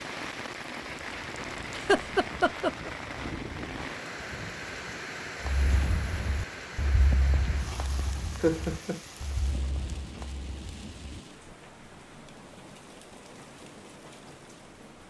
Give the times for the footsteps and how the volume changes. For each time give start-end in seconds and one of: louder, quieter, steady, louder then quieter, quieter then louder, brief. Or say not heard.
5.5-11.6 quieter.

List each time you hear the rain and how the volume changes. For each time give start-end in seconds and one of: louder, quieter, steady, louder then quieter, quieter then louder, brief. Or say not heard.
0.0-15.0 quieter.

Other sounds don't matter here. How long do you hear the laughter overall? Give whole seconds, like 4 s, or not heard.
2 s.